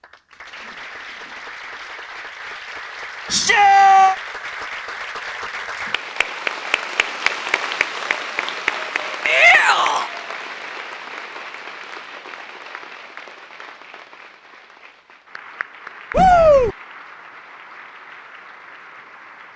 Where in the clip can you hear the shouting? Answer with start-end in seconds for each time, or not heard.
3.3-4.2, 9.2-10.1, 16.1-16.8.